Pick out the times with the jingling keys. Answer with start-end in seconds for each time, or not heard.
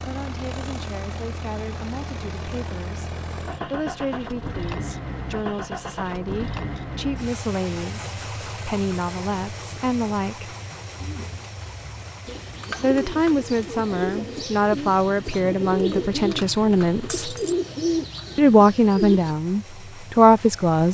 17.1-17.6.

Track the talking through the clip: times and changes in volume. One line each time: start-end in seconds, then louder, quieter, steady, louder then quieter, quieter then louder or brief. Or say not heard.
0.0-10.6 louder
12.8-17.3 steady
18.4-20.9 brief.